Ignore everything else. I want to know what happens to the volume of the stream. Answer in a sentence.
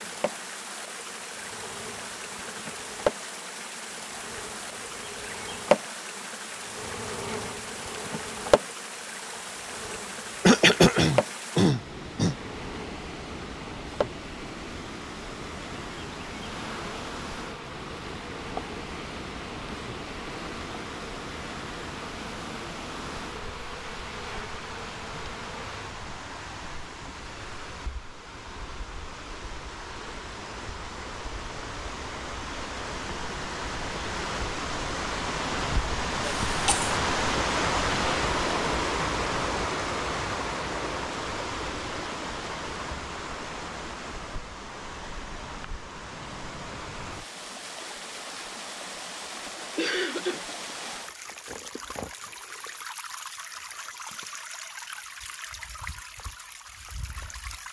The volume of the stream goes up, then down.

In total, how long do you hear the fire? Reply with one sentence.
The fire can't be heard in this clip.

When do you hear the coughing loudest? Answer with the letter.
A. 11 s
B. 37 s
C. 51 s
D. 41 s
A.